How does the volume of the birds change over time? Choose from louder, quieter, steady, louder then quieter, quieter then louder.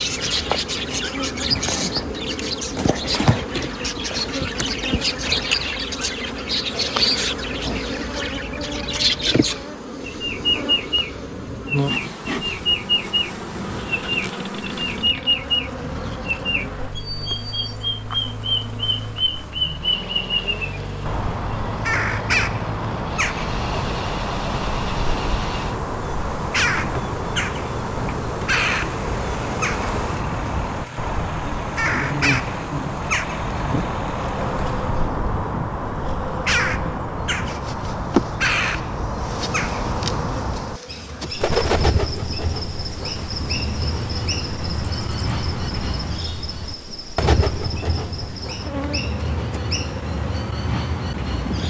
steady.